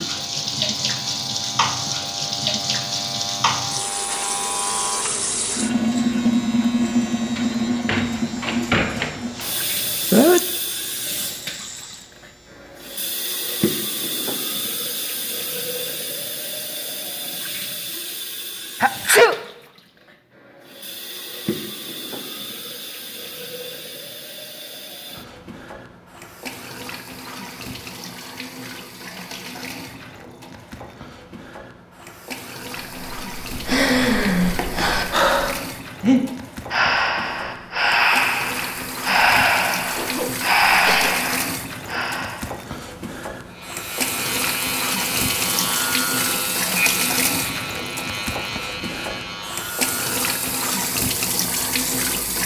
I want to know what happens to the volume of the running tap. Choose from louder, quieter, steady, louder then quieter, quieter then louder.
quieter then louder.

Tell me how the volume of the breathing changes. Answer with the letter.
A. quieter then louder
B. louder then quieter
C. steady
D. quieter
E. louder
C.